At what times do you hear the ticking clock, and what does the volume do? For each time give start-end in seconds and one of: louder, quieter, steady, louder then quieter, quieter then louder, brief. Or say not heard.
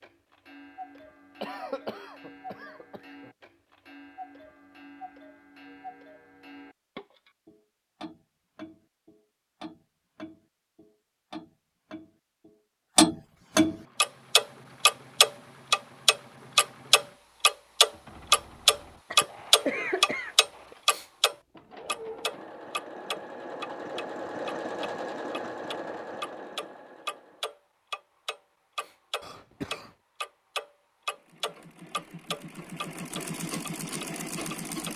0.0-34.9 louder then quieter.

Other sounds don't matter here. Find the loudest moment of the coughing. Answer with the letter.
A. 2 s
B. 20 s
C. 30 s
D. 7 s
B.